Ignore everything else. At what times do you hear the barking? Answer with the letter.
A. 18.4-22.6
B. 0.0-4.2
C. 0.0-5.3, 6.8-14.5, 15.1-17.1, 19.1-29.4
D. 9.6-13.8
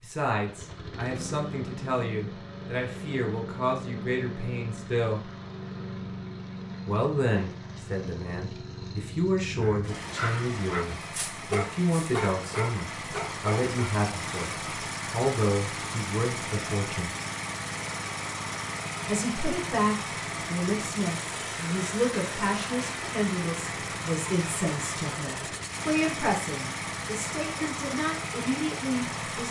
D.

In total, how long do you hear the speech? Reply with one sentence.
The speech can be heard for 25 seconds in total.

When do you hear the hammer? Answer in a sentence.
You can't hear the hammer here.